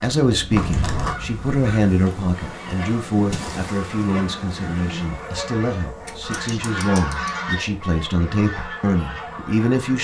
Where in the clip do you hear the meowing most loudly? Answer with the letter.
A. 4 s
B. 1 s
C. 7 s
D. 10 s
B.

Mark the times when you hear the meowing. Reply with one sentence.
You can hear the meowing from 0.5 to 1.1 s and from 6.0 to 7.3 s.